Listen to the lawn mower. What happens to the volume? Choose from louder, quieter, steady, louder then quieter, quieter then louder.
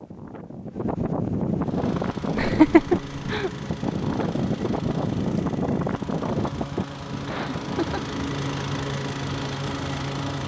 louder.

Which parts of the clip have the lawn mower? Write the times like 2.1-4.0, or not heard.
1.6-10.4.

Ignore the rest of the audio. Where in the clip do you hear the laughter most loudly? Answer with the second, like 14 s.
3 s.